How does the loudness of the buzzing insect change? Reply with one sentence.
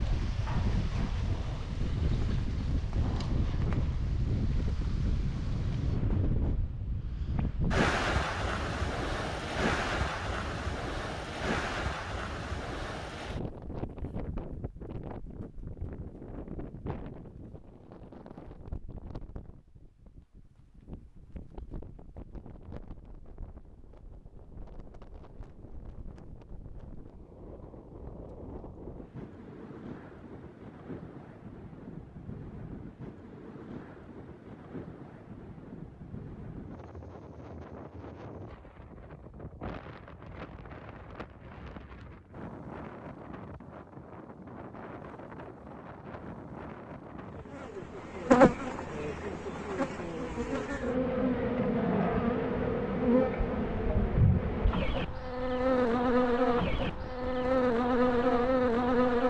The loudness of the buzzing insect stays about the same.